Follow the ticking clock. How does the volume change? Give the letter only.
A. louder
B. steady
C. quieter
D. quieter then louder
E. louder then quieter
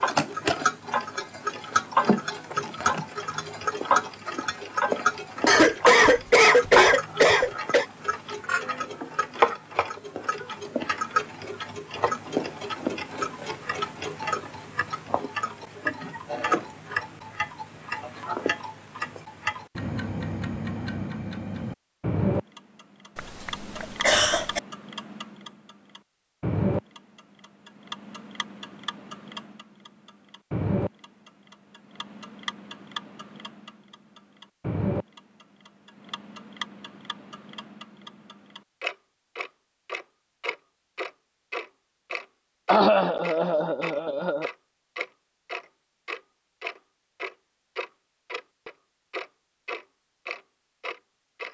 C.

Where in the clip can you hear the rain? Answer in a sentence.
The rain can't be heard in this clip.